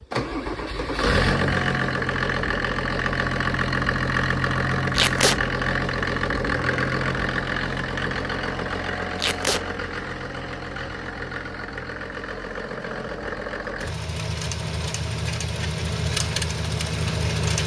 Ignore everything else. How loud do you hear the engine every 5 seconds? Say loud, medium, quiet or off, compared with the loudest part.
loud, loud, medium, loud.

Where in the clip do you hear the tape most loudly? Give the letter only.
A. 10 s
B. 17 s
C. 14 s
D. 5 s
D.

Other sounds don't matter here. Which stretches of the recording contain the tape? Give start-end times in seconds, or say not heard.
4.9-5.4, 9.2-9.6.